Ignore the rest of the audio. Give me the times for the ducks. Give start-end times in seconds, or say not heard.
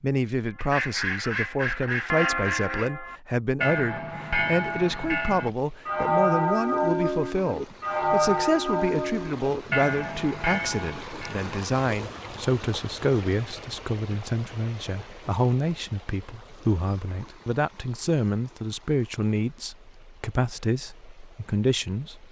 0.6-2.9.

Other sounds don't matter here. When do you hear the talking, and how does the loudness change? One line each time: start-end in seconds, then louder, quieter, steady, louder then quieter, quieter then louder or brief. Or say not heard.
0.0-22.2 steady.